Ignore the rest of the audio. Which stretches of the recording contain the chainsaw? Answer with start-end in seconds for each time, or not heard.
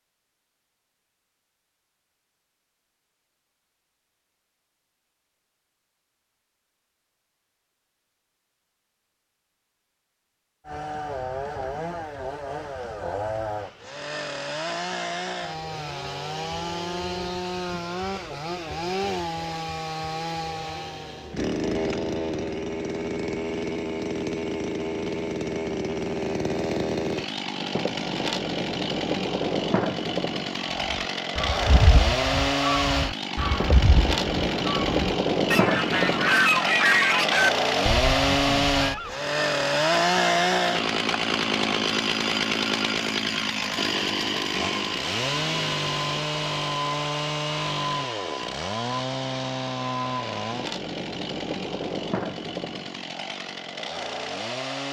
10.7-54.8.